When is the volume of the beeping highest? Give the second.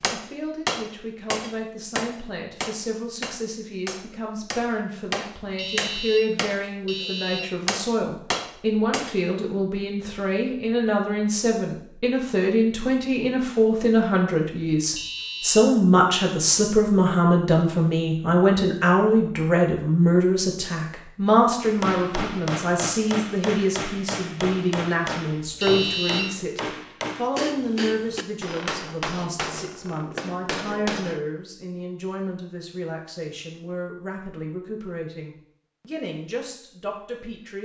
26 s.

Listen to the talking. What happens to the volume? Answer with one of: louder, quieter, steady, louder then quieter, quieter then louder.
louder then quieter.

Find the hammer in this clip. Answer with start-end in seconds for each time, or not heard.
0.0-9.2, 21.6-31.2.